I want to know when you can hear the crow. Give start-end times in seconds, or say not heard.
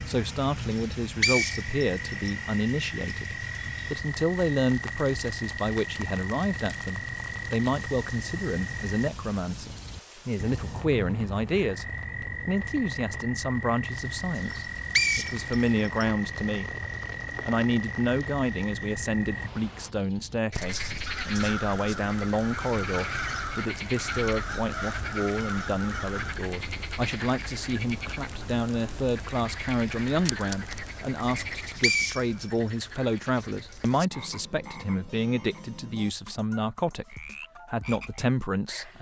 21.1-26.4.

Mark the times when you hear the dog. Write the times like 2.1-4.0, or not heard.
not heard.